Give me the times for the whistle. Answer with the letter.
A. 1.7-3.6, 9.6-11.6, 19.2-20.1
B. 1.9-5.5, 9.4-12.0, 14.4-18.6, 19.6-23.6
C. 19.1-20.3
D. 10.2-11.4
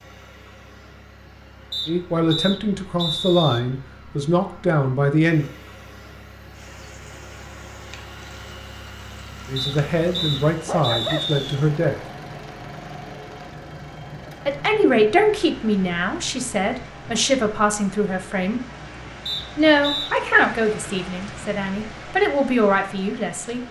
A.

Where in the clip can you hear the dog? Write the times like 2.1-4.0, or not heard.
10.2-11.4.